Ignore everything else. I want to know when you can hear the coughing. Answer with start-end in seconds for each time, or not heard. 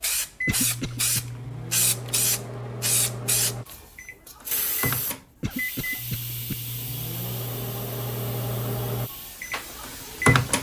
0.5-1.2, 5.4-6.5.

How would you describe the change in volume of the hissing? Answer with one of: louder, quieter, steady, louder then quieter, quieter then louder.
quieter.